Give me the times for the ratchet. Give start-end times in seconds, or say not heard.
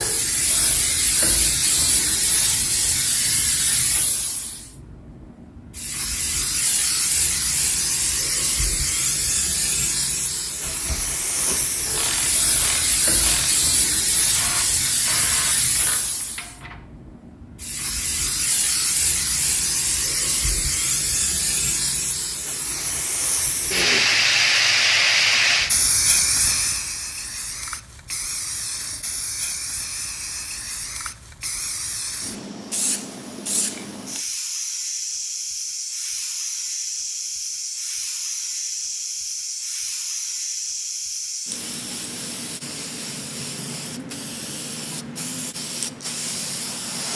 10.6-16.8.